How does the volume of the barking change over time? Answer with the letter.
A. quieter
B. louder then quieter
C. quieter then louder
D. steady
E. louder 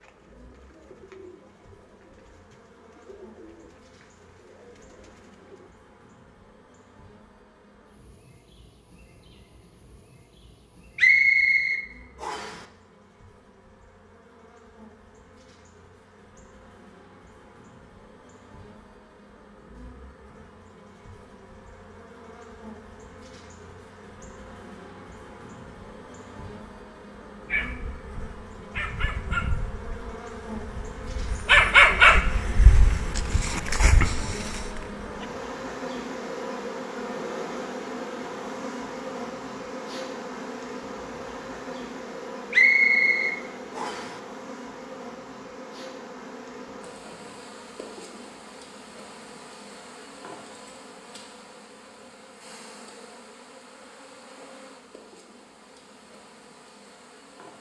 B.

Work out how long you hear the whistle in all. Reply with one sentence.
The whistle can be heard for 3 seconds in total.